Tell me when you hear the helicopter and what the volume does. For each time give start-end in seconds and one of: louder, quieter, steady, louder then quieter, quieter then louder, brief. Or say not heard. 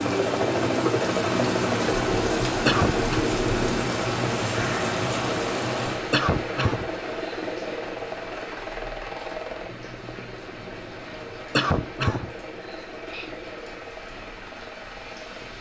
0.0-15.5 quieter.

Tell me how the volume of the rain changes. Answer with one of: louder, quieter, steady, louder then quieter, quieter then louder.
quieter.